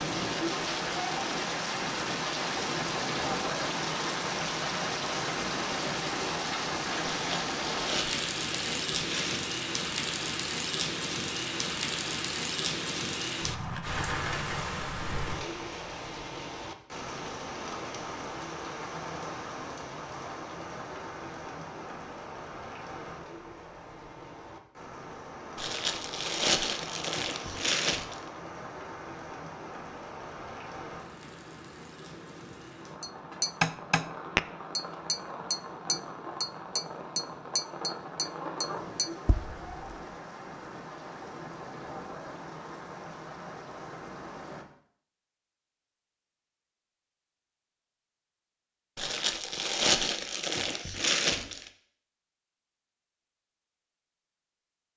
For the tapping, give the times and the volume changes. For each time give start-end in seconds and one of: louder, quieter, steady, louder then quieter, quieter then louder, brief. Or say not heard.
33.0-40.0 quieter.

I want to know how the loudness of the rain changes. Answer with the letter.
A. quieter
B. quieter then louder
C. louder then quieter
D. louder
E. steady
A.